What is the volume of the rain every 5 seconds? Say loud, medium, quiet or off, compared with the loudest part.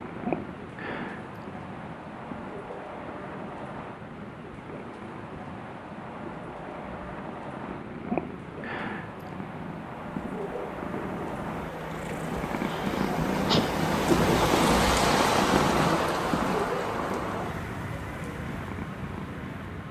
medium, medium, loud, loud.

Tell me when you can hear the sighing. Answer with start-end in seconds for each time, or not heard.
12.7-13.8.